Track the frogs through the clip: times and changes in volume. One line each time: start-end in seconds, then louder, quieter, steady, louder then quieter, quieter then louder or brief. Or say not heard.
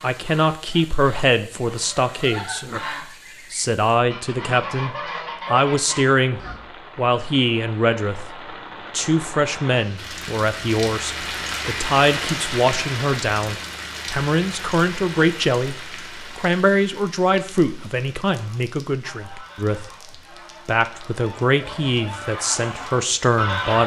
not heard.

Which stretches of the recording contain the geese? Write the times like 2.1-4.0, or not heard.
0.0-6.6, 18.4-23.8.